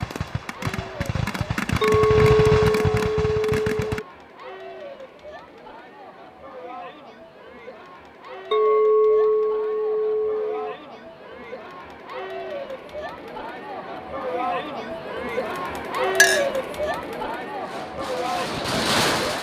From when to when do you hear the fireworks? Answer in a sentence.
The fireworks can be heard from 0.0 to 4.0 s and from 17.6 to 19.3 s.